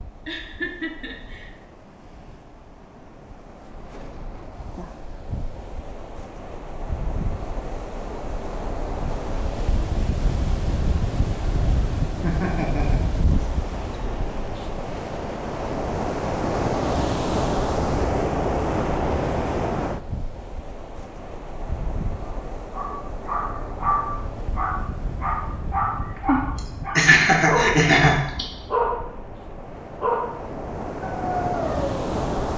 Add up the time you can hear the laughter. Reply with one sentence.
You can hear the laughter for 4 seconds altogether.